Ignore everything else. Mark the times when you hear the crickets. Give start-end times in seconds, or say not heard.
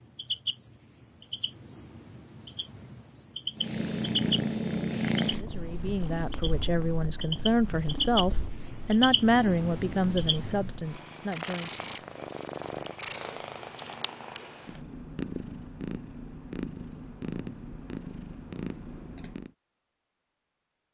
0.0-10.8.